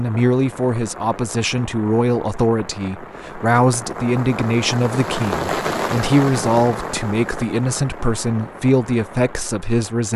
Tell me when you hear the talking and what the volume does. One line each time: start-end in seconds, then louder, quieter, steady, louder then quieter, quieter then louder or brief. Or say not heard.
0.0-10.1 steady.